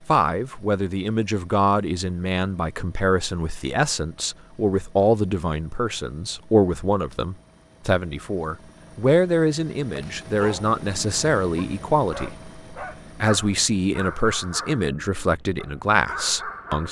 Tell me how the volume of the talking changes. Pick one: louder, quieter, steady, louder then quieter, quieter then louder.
steady.